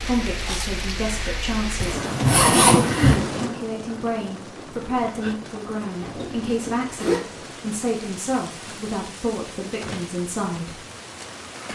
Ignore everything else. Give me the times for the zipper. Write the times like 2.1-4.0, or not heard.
1.8-3.2, 6.0-7.2.